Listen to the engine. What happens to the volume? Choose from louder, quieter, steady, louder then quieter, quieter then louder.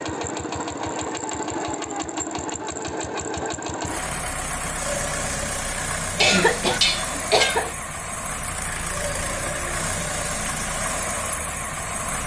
steady.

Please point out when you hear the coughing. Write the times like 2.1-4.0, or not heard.
6.2-7.8.